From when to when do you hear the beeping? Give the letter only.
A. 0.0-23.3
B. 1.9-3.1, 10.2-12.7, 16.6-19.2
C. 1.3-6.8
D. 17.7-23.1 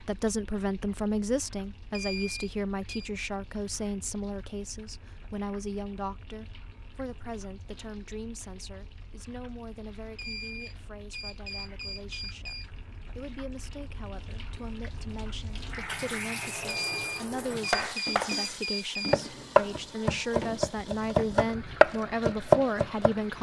B.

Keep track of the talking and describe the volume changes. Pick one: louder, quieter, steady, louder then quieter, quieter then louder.
quieter then louder.